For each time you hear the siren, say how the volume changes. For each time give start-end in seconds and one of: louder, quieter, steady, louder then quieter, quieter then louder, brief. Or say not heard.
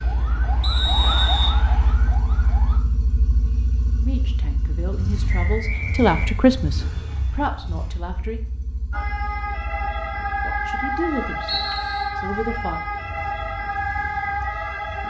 0.0-2.8 brief
8.9-15.0 steady.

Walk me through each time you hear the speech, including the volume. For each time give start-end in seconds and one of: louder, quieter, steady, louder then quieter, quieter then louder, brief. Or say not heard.
4.0-8.4 louder then quieter
10.4-12.8 brief.